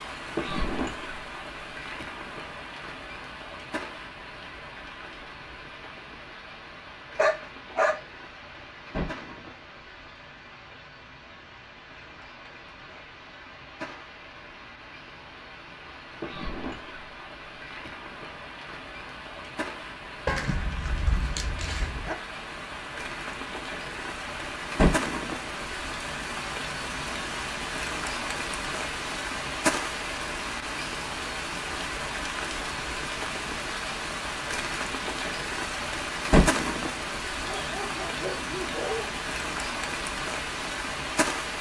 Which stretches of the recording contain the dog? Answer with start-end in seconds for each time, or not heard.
7.2-8.0, 20.2-22.1, 37.4-39.1.